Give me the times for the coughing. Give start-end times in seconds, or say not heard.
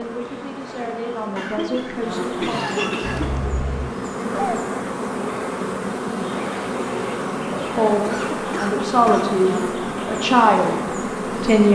1.4-3.3, 8.0-9.4.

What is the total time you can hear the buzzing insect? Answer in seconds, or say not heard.
12 s.